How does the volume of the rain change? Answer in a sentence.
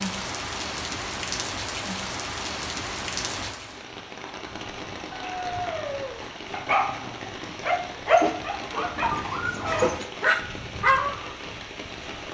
The loudness of the rain goes down.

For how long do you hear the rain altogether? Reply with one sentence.
The rain can be heard for 12 seconds in total.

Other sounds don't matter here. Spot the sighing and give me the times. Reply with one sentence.
The sighing can't be heard in this clip.